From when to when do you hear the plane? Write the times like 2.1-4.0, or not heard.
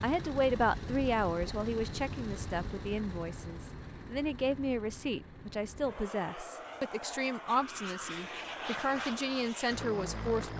0.0-10.5.